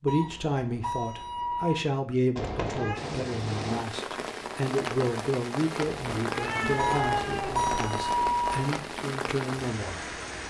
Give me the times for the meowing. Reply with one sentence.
The meowing can be heard from 2.4 to 3.0 s and from 5.8 to 7.8 s.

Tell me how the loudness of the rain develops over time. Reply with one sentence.
The loudness of the rain stays about the same.